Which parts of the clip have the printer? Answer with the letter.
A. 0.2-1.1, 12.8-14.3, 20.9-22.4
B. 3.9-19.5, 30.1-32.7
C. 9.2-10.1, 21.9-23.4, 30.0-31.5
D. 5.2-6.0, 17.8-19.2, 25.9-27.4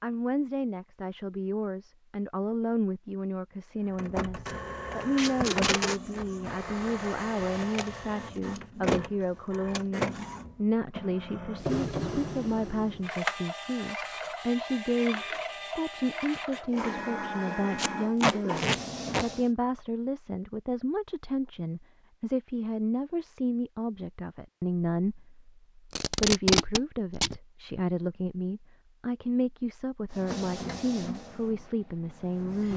B.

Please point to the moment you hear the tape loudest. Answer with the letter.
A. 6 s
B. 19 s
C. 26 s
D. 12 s
C.